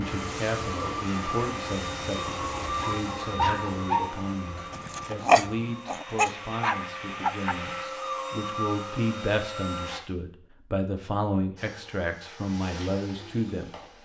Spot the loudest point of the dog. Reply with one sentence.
The volume of the dog peaks at 5 seconds.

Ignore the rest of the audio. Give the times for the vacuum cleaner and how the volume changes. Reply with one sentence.
The vacuum cleaner can be heard from 0.0 to 10.0 s, getting quieter then louder; and briefly from 11.6 to 13.9 s.